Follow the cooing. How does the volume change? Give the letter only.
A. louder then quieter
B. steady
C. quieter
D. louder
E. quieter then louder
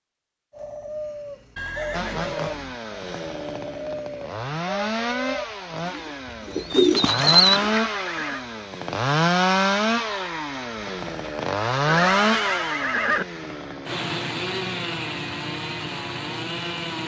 D.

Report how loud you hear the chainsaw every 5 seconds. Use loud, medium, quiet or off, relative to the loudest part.
medium, loud, loud, medium.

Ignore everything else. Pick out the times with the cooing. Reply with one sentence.
You can hear the cooing from 0.5 to 7.7 s.